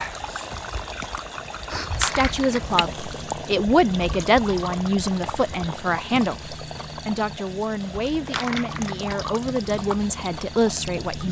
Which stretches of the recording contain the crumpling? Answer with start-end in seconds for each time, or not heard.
1.9-2.8, 8.2-9.1.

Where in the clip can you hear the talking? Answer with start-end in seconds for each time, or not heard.
1.9-11.2.